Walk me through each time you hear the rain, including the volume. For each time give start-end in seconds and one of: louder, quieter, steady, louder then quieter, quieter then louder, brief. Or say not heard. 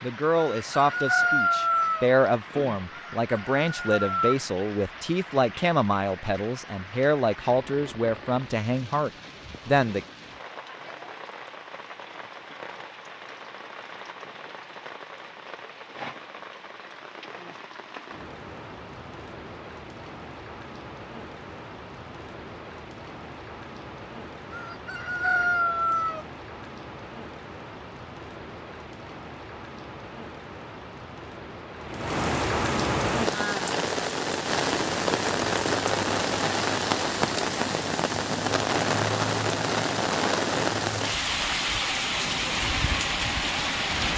0.0-44.1 louder.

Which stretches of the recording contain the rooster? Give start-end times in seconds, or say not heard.
0.3-2.1, 2.9-4.3, 24.5-26.2.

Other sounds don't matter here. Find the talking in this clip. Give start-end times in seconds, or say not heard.
0.0-10.1.